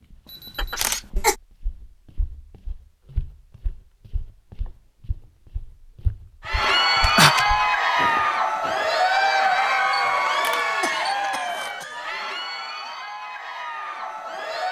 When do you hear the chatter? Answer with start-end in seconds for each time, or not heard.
6.4-14.6.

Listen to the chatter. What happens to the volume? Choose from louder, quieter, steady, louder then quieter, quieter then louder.
quieter.